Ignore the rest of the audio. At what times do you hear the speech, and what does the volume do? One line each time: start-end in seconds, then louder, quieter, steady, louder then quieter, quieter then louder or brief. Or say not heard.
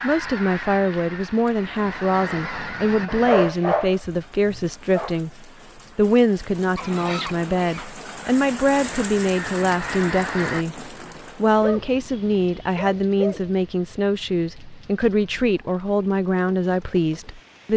0.0-17.7 steady.